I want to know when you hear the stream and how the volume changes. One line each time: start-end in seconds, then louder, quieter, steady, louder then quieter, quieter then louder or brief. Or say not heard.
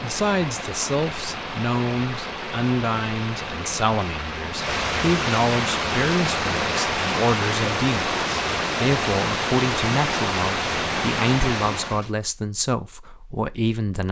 0.0-12.1 louder.